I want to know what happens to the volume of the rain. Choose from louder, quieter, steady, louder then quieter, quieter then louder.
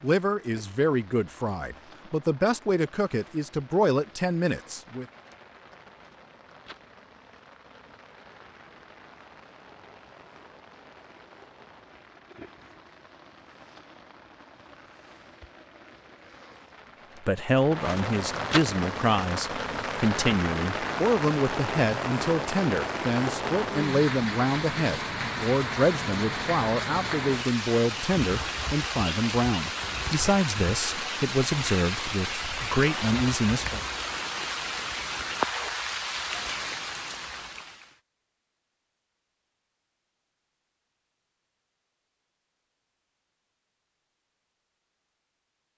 louder.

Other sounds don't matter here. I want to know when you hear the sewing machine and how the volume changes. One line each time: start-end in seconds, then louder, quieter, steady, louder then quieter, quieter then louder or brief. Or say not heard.
not heard.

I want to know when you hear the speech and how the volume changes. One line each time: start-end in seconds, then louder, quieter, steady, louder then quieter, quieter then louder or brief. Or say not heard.
0.0-5.0 quieter then louder
17.2-33.8 steady.